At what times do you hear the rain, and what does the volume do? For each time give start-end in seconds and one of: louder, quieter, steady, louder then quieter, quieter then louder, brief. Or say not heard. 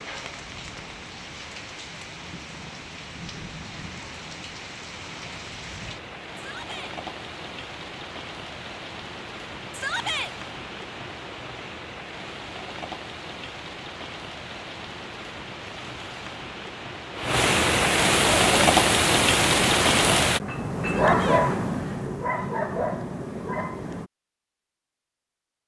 0.0-20.4 louder.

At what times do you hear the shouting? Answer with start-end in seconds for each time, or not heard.
6.3-7.0, 9.7-10.3, 20.9-21.4.